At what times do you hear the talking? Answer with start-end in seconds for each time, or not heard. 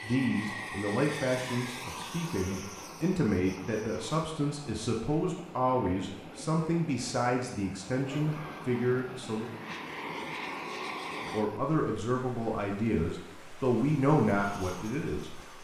0.0-9.5, 11.2-15.3.